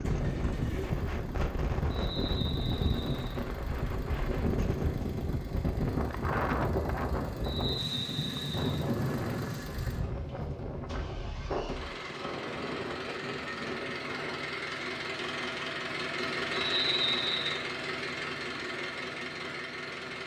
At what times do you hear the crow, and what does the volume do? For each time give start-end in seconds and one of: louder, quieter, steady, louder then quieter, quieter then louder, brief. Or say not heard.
not heard.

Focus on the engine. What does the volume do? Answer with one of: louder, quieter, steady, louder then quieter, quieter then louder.
louder.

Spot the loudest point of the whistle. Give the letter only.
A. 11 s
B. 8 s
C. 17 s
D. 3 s
C.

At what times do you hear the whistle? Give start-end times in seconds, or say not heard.
1.9-3.4, 7.4-8.8, 16.5-17.6.